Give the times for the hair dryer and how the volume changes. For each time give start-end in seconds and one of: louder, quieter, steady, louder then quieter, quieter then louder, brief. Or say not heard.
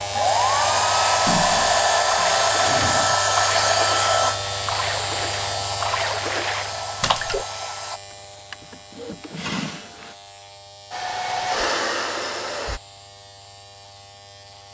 0.0-8.0 quieter
10.9-12.8 brief.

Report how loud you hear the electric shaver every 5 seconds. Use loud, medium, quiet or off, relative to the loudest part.
loud, medium, quiet.